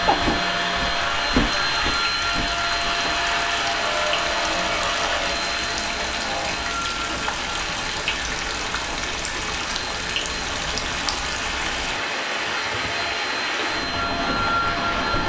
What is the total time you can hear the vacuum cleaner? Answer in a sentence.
The vacuum cleaner can be heard for 15 seconds in total.